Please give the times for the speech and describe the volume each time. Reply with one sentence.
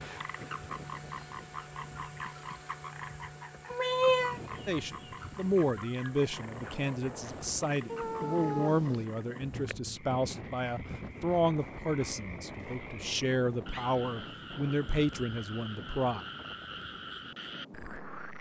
You can hear the speech from 4.7 to 16.2 s, at a steady volume.